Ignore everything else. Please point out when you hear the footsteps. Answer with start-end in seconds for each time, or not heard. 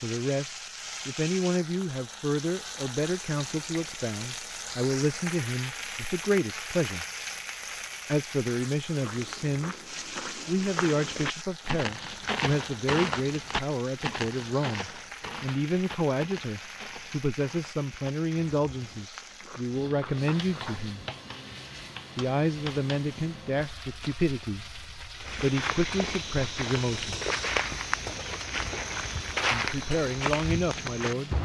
8.8-20.8, 25.1-31.4.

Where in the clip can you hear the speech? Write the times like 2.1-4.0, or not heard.
0.0-7.0, 8.1-21.0, 22.1-27.2, 29.5-31.4.